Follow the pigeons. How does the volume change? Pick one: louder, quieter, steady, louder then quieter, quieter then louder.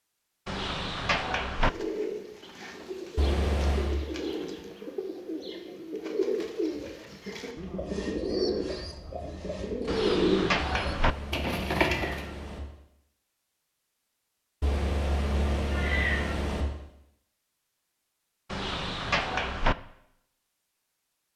louder.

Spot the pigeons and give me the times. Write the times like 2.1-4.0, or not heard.
1.6-12.3.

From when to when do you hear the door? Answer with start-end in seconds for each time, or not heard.
0.5-1.7, 9.8-11.2, 18.5-19.8.